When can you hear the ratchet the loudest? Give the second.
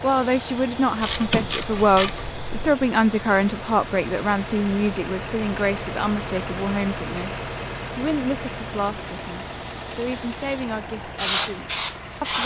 1 s.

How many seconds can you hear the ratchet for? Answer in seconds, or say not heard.
2 s.